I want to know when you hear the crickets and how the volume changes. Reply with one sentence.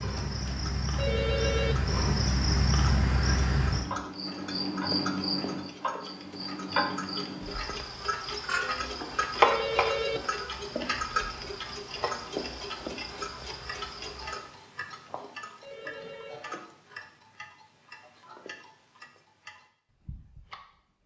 You can hear the crickets from 0.0 to 14.4 s, getting quieter.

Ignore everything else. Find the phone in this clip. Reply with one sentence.
The phone can be heard from 0.9 to 1.8 s, from 9.4 to 10.2 s and from 15.6 to 16.4 s.